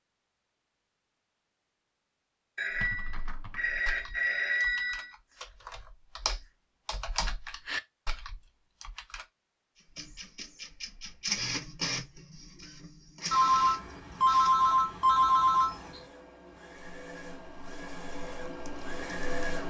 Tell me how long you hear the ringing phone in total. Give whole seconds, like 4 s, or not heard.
5 s.